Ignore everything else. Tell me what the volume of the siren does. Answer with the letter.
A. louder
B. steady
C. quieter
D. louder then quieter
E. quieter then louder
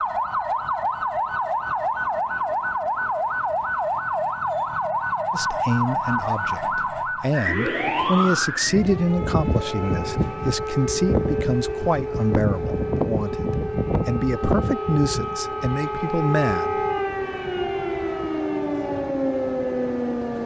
B.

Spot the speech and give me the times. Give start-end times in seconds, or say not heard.
5.3-16.8.